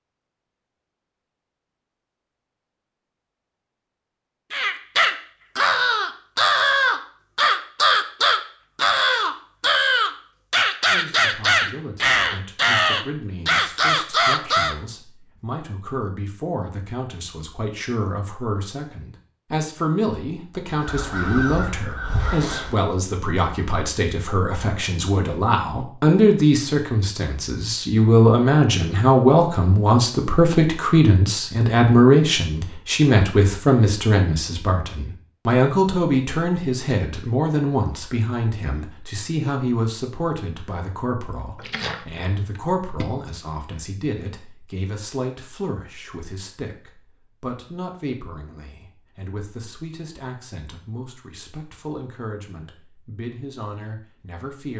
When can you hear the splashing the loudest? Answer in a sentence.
The volume of the splashing peaks at 42 seconds.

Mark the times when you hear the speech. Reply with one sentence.
You can hear the speech from 10.8 to 54.7 s.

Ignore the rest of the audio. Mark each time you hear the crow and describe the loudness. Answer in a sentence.
The crow can be heard from 4.5 to 14.8 s, at a steady volume; and briefly from 20.8 to 22.8 s.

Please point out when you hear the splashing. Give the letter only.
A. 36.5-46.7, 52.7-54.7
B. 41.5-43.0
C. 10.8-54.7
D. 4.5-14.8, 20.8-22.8
B.